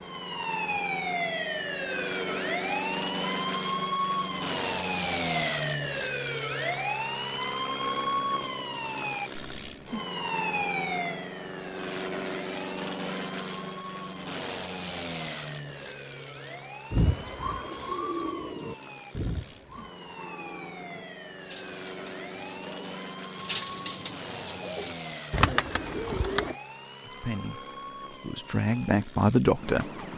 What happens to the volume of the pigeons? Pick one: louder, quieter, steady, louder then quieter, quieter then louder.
quieter then louder.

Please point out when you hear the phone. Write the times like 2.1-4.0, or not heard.
not heard.